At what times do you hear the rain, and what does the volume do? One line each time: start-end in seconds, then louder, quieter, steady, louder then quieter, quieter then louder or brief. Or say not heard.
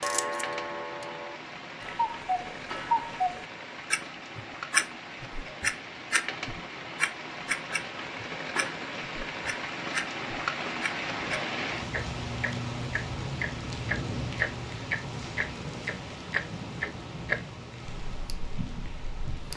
0.0-19.5 louder then quieter.